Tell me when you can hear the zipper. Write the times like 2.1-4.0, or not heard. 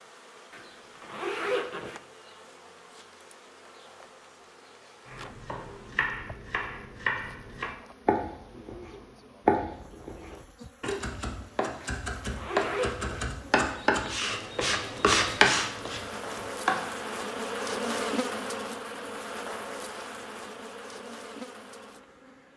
0.5-2.0, 11.8-13.2.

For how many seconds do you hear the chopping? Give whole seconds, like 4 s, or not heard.
12 s.